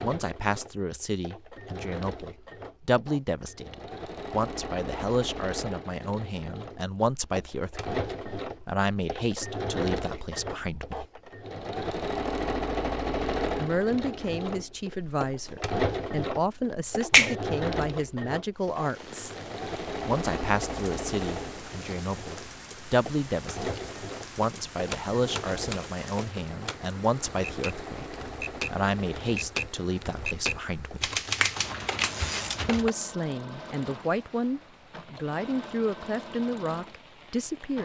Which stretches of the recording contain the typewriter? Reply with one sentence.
You can hear the typewriter from 24.4 to 32.9 s.